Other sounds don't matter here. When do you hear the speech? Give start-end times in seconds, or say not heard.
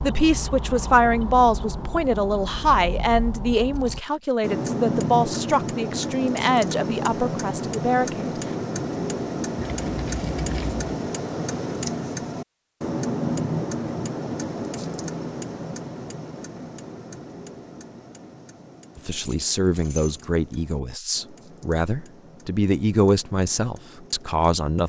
0.0-8.3, 18.9-24.8.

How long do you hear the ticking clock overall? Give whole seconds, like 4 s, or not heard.
25 s.